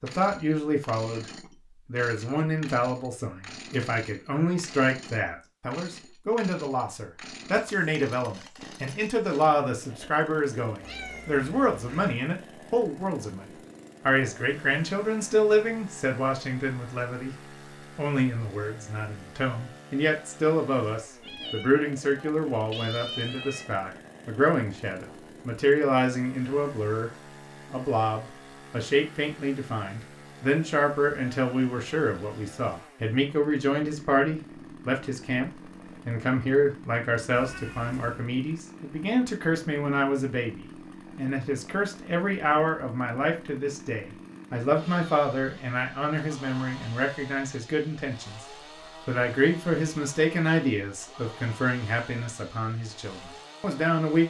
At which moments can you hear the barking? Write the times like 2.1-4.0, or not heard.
not heard.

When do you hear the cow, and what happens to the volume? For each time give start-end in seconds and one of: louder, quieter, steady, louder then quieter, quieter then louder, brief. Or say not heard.
not heard.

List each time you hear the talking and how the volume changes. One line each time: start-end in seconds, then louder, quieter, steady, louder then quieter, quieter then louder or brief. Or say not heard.
0.0-1.2 brief
1.9-27.1 steady
27.7-48.4 steady
49.0-54.2 quieter.